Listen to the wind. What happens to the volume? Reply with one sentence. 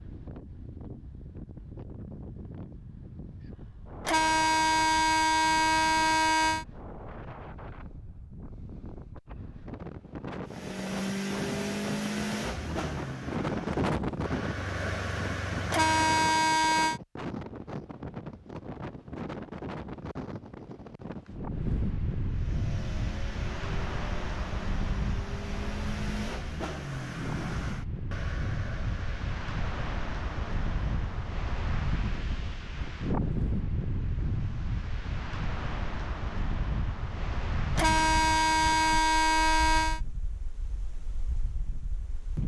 The volume of the wind goes up.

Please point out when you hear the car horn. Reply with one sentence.
The car horn can be heard from 4.0 to 6.7 s, from 15.7 to 17.0 s and from 37.8 to 40.0 s.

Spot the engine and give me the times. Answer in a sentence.
You can hear the engine from 10.4 to 16.3 s and from 22.3 to 31.2 s.